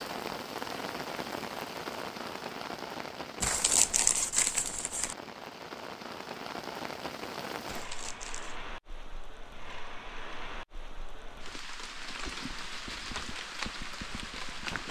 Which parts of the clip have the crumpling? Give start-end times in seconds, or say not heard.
3.4-5.2, 7.7-8.6.